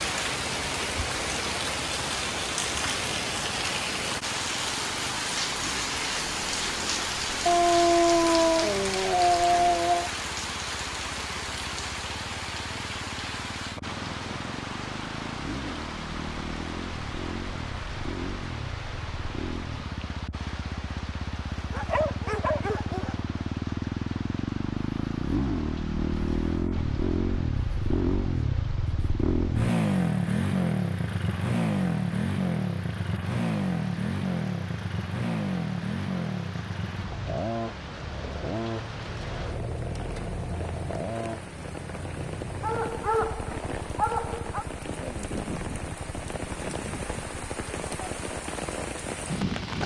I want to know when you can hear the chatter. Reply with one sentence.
You can't hear the chatter here.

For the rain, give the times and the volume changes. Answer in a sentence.
You can hear the rain from 0.0 to 49.8 s, getting quieter then louder.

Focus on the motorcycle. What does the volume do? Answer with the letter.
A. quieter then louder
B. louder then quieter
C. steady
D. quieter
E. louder
B.